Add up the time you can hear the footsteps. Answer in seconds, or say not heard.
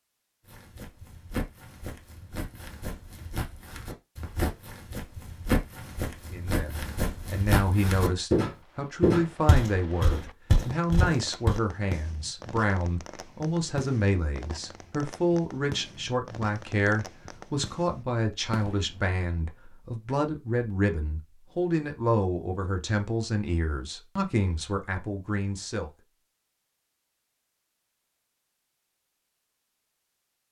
11 s.